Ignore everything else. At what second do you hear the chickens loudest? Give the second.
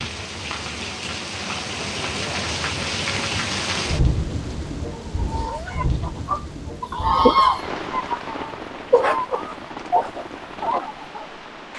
7 s.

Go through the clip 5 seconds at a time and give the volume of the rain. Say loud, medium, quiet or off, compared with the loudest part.
loud, medium, medium.